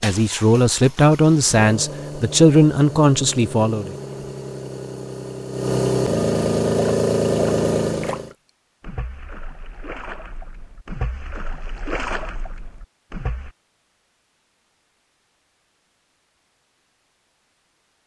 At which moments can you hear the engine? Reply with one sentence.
You can hear the engine from 0.0 to 8.3 s.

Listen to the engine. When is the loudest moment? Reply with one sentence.
The loudest moment of the engine is at 7 seconds.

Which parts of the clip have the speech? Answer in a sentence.
The speech can be heard from 0.0 to 4.0 s.